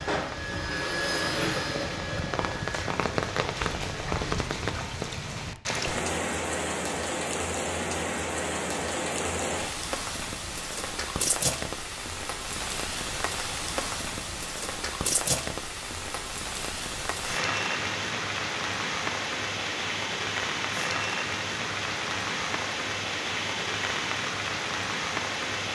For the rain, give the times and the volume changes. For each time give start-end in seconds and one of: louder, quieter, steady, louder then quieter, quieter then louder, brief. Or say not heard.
0.0-25.6 steady.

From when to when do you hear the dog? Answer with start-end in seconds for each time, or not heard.
not heard.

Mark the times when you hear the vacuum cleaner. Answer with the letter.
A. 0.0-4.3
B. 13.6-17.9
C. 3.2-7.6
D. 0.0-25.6
A.